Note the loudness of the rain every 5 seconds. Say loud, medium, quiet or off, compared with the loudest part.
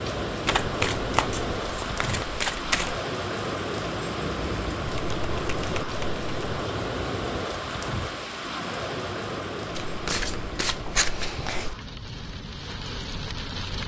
loud, loud, medium.